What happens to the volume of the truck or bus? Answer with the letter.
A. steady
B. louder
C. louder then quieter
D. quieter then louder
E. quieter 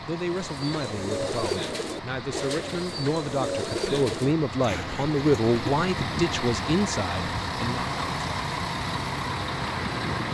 B.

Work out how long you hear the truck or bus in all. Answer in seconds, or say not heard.
10 s.